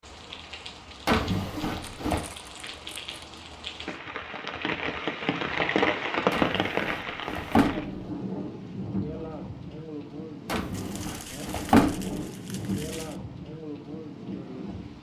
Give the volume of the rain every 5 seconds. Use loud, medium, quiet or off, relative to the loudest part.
medium, loud, medium.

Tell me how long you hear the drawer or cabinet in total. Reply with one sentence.
The drawer or cabinet can be heard for 5 seconds in total.